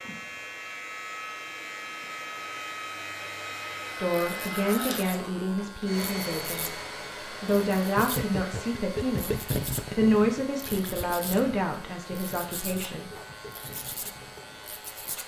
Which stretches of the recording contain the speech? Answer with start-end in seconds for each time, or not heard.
4.0-13.1.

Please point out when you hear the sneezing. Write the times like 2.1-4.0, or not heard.
not heard.